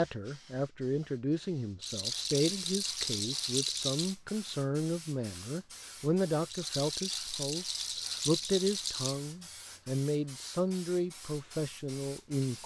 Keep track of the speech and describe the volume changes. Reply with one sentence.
The volume of the speech stays about the same.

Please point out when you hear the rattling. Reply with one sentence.
You can hear the rattling from 1.8 to 4.2 s and from 6.5 to 9.2 s.